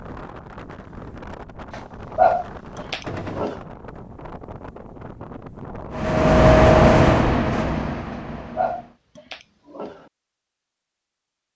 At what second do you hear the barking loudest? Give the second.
2 s.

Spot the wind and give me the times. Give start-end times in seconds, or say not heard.
0.0-6.2.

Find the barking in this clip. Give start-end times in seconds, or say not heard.
1.7-3.6, 8.1-10.1.